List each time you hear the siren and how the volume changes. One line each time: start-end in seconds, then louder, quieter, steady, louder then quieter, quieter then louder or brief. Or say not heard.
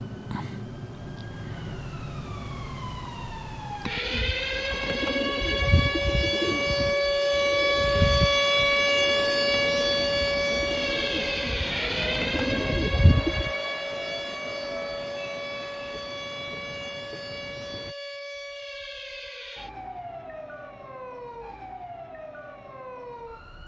0.0-23.6 louder then quieter.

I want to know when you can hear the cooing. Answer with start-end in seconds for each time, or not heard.
4.0-13.5.